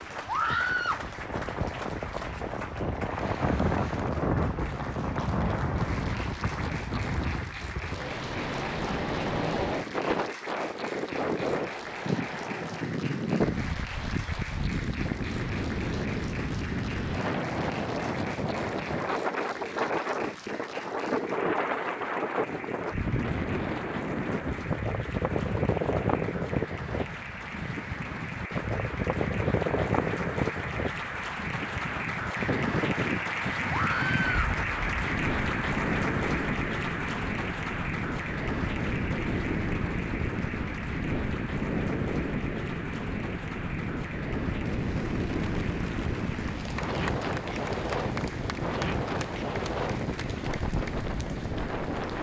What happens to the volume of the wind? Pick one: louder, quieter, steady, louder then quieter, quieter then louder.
steady.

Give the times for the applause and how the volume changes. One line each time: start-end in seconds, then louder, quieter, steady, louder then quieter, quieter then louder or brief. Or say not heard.
0.0-52.1 louder then quieter.